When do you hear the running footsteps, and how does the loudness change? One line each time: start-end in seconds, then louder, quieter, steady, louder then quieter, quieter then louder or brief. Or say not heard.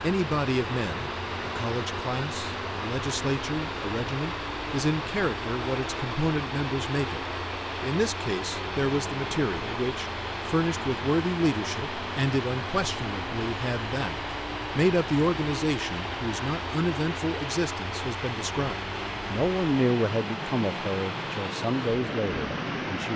not heard.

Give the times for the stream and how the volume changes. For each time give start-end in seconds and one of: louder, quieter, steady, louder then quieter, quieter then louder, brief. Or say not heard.
0.0-23.1 steady.